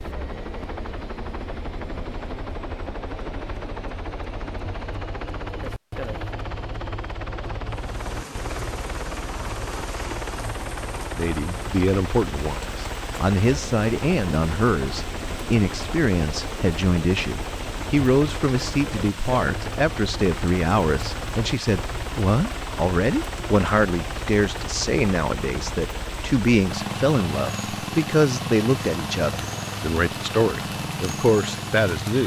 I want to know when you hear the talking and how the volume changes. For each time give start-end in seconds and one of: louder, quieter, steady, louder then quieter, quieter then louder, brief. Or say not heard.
11.2-32.2 steady.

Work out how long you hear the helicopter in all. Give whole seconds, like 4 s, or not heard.
32 s.